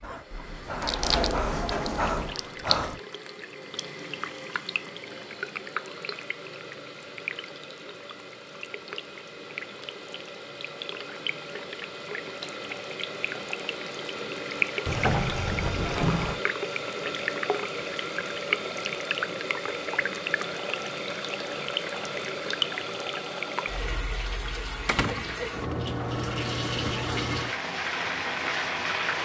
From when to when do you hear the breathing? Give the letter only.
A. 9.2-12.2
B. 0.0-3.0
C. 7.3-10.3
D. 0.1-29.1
B.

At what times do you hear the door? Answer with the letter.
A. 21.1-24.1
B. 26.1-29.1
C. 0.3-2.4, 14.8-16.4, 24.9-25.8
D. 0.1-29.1
C.